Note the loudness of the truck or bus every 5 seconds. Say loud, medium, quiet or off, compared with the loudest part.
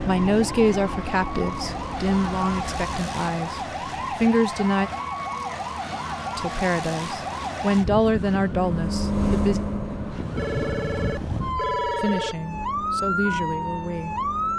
medium, loud, quiet.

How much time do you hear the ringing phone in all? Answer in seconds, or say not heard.
2 s.